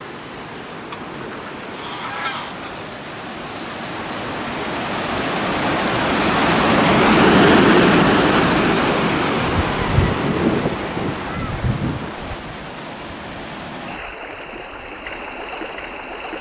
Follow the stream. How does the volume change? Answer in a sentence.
The volume of the stream goes up, then down.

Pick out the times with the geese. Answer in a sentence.
The geese can be heard from 0.9 to 2.9 s and from 9.4 to 12.3 s.